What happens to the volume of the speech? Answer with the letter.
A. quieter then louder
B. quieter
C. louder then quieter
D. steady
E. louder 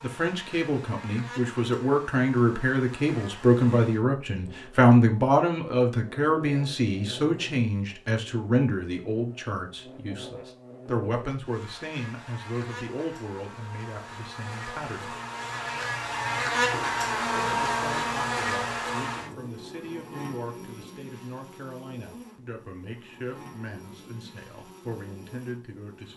B.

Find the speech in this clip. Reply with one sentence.
You can hear the speech from 0.0 to 15.2 s and from 17.4 to 26.1 s.